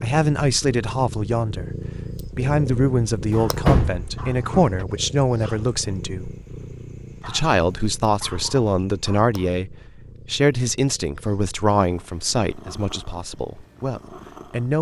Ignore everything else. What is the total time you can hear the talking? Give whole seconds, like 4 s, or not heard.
14 s.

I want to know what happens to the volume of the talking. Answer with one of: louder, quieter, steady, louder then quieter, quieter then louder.
steady.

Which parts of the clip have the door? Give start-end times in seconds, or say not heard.
3.3-4.8.